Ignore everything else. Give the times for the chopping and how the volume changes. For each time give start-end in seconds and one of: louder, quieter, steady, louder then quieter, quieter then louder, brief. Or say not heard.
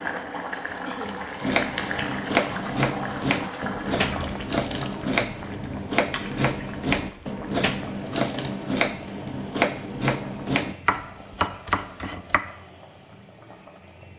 1.4-12.4 steady.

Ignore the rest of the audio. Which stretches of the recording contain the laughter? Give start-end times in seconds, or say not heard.
0.8-1.2.